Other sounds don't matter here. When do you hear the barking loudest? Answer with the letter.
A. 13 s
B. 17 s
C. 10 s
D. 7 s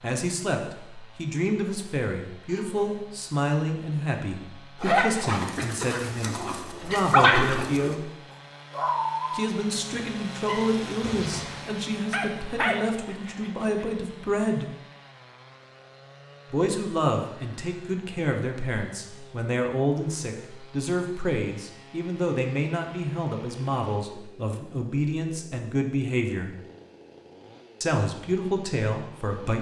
D.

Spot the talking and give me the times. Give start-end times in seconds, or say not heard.
0.0-8.1, 9.3-14.7, 16.5-26.5, 27.8-29.5.